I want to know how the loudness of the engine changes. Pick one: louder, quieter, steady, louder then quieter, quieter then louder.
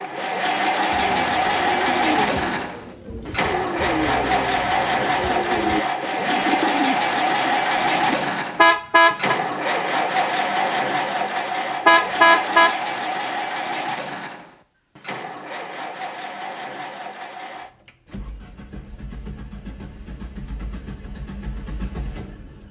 quieter.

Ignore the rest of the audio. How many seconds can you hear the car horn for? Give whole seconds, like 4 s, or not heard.
2 s.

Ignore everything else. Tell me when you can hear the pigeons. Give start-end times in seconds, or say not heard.
0.9-8.2.